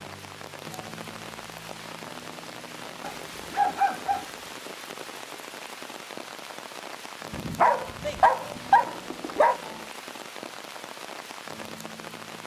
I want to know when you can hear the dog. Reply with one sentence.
The dog can be heard from 3.0 to 4.2 s and from 7.3 to 9.6 s.